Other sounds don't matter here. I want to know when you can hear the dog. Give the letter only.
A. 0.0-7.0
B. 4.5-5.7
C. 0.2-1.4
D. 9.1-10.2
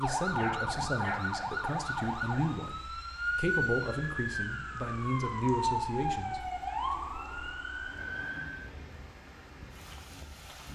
C.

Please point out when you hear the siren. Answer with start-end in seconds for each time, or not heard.
0.0-8.7.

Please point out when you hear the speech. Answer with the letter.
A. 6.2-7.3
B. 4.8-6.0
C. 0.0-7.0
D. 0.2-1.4
C.